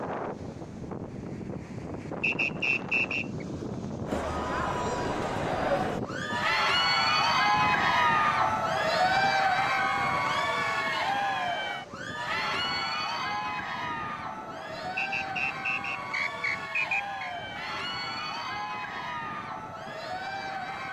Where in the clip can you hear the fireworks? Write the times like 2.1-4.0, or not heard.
not heard.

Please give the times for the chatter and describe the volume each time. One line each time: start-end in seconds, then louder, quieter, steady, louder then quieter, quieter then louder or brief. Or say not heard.
4.0-20.8 quieter.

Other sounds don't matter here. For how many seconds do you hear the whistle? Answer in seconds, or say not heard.
4 s.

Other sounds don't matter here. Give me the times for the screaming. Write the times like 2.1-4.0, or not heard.
not heard.